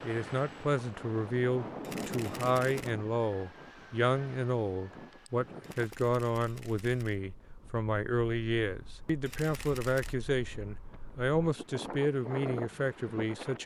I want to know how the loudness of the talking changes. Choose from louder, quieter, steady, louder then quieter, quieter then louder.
steady.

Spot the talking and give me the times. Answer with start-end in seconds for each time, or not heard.
0.0-13.6.